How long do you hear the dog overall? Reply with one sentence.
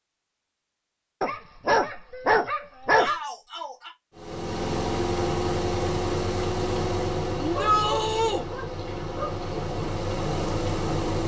The dog can be heard for 4 seconds in total.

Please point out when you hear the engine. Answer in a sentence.
You can hear the engine from 4.2 to 11.2 s.